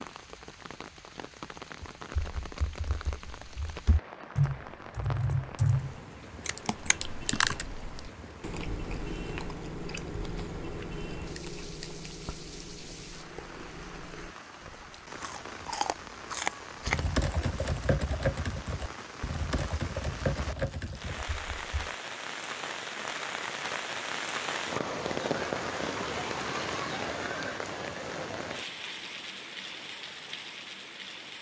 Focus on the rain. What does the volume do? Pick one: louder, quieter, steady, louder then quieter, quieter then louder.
louder.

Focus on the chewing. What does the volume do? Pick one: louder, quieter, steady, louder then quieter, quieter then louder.
quieter then louder.